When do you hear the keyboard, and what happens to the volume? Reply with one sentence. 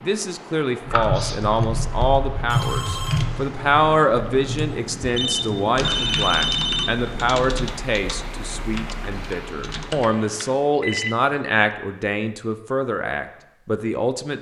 You can hear the keyboard from 0.8 to 10.1 s, getting quieter.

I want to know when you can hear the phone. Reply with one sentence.
The phone can be heard from 2.5 to 3.2 s, from 5.2 to 7.2 s and from 9.8 to 11.2 s.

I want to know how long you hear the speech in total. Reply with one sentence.
The speech can be heard for 14 seconds in total.